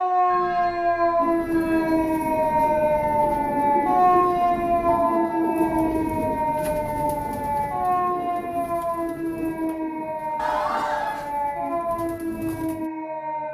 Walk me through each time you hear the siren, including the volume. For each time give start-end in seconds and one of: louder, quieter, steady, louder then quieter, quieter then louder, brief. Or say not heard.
0.0-13.5 quieter.